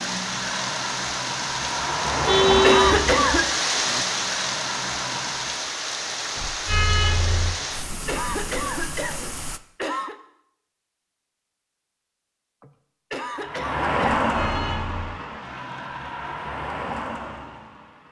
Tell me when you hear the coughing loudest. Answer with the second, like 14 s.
3 s.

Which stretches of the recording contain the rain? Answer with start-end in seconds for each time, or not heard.
0.0-9.6.